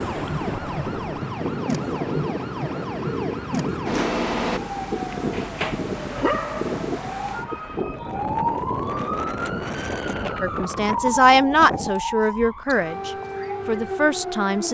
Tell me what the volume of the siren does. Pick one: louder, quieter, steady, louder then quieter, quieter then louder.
steady.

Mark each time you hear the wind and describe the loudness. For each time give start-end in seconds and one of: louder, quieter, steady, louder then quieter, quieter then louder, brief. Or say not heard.
0.0-11.9 steady.